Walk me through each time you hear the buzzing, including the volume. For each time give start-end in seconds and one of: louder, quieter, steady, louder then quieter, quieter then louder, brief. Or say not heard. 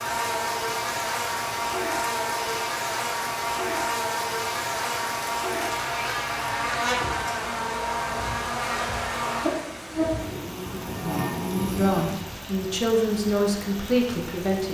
0.0-12.2 steady.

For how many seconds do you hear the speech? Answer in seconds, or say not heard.
3 s.